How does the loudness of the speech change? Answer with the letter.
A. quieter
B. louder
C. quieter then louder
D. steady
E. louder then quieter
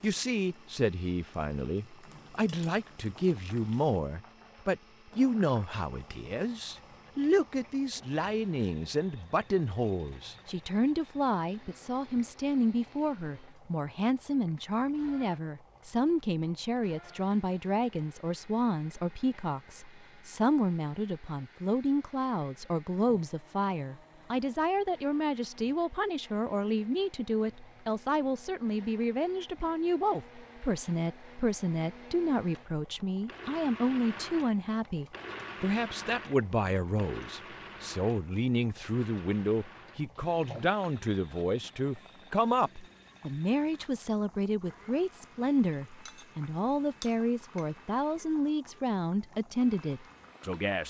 D.